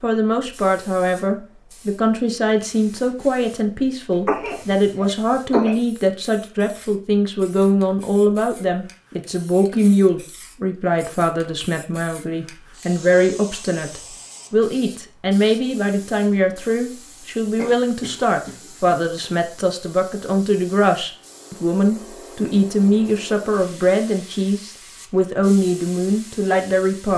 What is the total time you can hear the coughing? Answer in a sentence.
The coughing can be heard for 3 seconds in total.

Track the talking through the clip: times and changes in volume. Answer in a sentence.
The talking can be heard from 0.0 to 27.1 s, at a steady volume.